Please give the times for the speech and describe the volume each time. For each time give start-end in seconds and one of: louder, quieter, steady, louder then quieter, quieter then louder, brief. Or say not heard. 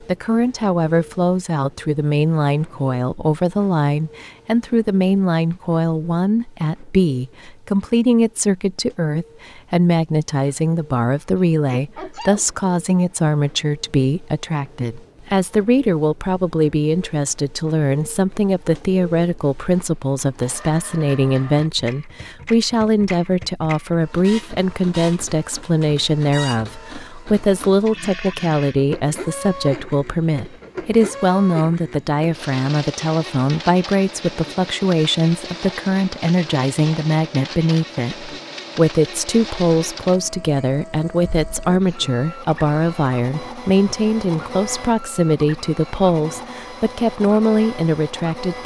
0.0-48.6 steady.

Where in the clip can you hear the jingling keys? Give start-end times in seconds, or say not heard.
not heard.